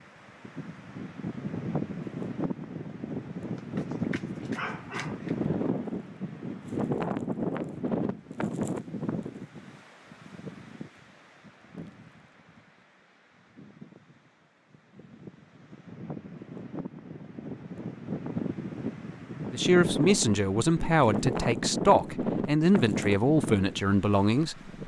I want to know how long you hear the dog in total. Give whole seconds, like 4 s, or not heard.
2 s.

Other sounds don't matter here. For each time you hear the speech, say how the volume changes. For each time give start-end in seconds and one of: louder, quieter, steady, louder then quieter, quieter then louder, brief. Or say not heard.
19.5-24.7 steady.